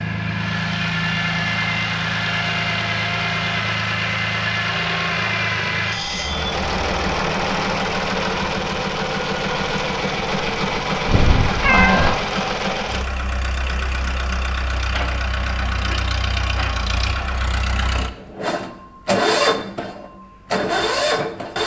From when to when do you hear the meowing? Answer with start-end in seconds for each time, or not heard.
11.1-12.2.